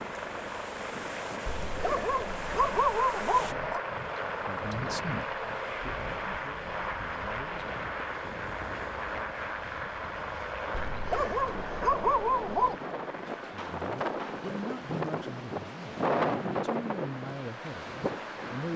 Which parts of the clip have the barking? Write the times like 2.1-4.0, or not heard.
1.4-3.9, 10.7-12.8.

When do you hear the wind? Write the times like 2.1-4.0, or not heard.
0.0-18.7.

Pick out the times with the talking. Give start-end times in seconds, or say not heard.
4.5-7.8, 13.4-18.7.